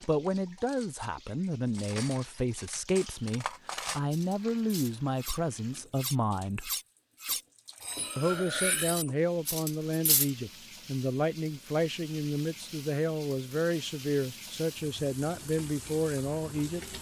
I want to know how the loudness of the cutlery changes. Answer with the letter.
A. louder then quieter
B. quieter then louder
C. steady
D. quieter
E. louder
E.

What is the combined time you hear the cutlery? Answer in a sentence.
The cutlery can be heard for 10 seconds in total.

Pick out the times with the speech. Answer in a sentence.
You can hear the speech from 0.0 to 6.7 s and from 8.2 to 16.9 s.